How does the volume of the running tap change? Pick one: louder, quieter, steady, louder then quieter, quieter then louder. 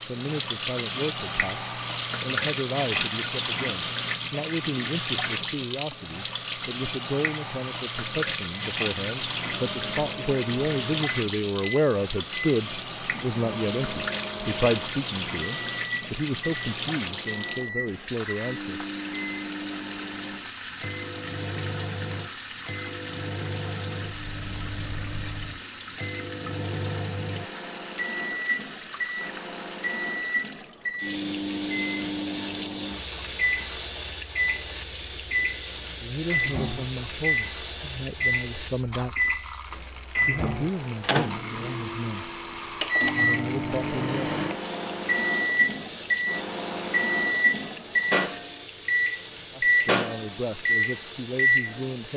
quieter.